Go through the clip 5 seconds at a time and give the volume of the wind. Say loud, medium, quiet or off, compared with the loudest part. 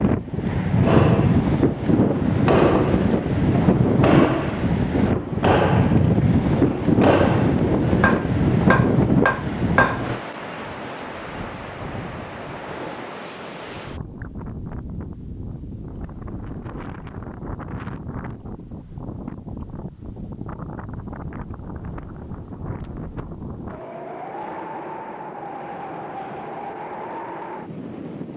loud, loud, quiet, quiet, quiet, quiet.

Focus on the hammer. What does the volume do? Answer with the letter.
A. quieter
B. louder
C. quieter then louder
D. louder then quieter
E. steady
E.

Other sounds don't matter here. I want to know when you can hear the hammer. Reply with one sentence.
You can hear the hammer from 0.8 to 10.2 s.